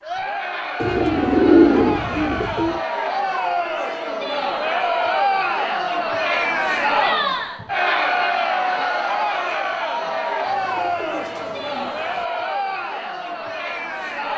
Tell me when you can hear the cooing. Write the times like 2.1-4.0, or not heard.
0.8-2.8, 10.4-12.2.